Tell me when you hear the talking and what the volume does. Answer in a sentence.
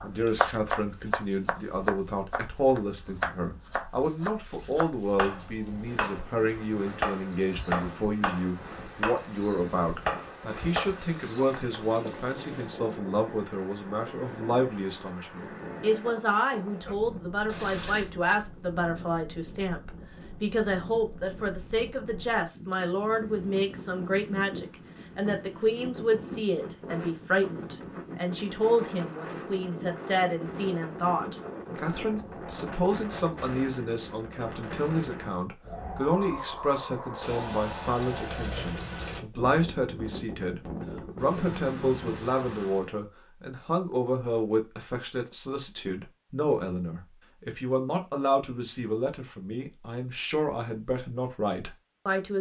The talking can be heard from 0.0 to 52.3 s, at a steady volume.